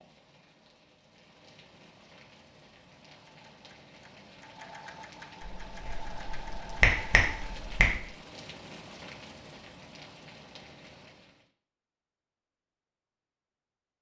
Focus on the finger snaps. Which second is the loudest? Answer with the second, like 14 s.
7 s.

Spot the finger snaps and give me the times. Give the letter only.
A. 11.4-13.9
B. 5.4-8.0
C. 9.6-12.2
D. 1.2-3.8
B.